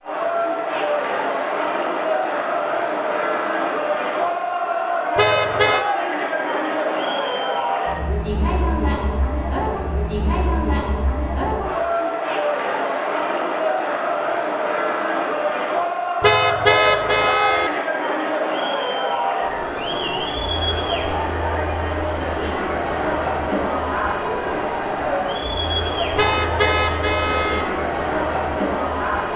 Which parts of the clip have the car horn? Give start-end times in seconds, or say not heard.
5.2-5.8, 16.2-17.7, 26.1-27.6.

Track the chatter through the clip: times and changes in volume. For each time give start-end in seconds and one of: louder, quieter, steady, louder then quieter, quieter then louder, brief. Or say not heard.
0.0-29.3 steady.